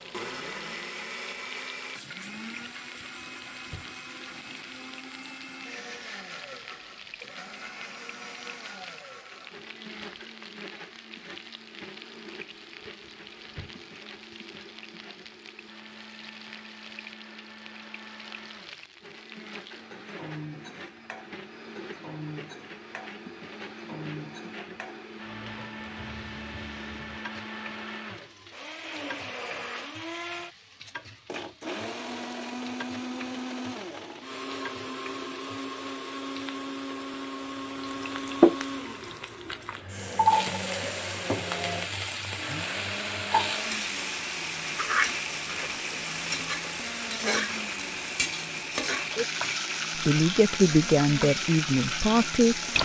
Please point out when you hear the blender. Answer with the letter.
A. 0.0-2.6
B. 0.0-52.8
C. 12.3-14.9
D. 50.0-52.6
B.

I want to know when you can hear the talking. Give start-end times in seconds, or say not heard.
50.0-52.6.